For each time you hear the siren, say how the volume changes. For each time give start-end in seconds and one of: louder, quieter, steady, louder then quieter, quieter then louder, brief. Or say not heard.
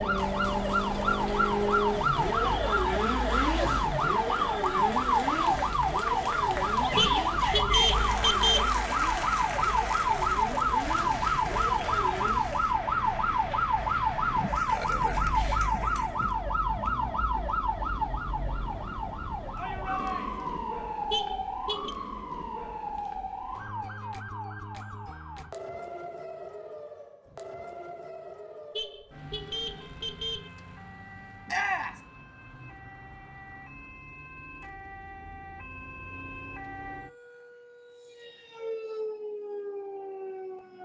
0.0-40.8 quieter.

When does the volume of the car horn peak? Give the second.
8 s.